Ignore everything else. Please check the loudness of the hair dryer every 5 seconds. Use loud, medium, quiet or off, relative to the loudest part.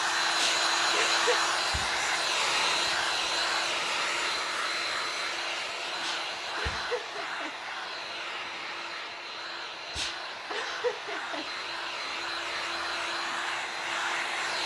loud, medium, medium.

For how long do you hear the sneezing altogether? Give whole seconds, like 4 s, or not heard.
4 s.